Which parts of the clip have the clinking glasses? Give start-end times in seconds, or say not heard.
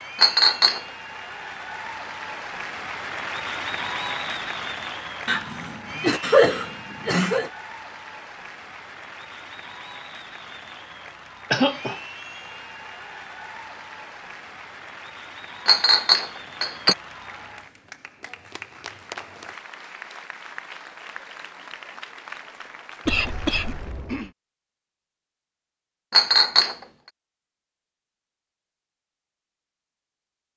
0.1-0.8, 15.7-16.9, 26.1-26.8.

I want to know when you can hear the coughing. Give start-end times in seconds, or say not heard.
5.2-7.5, 11.5-12.0, 23.1-24.3.